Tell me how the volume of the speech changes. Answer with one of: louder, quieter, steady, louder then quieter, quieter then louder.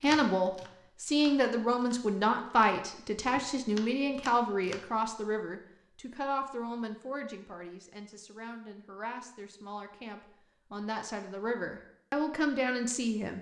quieter then louder.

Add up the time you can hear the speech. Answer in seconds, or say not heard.
13 s.